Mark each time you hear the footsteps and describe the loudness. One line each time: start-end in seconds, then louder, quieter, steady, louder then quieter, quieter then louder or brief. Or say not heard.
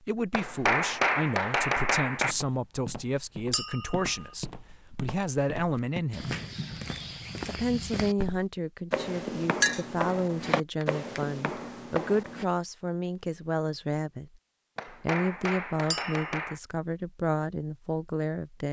2.2-12.4 louder.